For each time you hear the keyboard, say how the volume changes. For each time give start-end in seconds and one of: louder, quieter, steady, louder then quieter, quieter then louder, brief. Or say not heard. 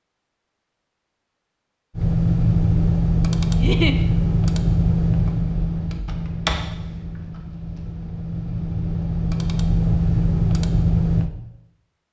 1.9-11.3 quieter then louder.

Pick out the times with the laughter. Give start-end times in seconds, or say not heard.
3.5-4.0.